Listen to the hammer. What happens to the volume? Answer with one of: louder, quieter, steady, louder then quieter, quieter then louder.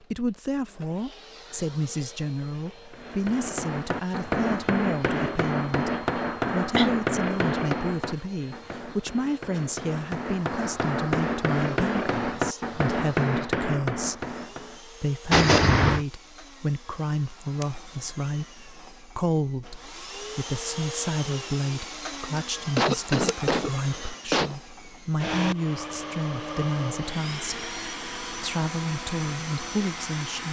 quieter then louder.